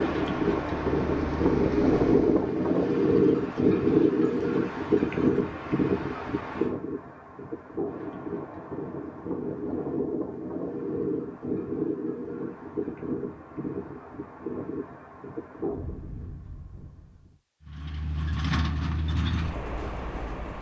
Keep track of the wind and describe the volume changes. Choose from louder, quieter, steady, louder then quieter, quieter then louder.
quieter.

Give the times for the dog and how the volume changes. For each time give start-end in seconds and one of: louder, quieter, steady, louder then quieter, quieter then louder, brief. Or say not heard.
not heard.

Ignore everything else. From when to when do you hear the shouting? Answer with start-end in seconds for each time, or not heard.
not heard.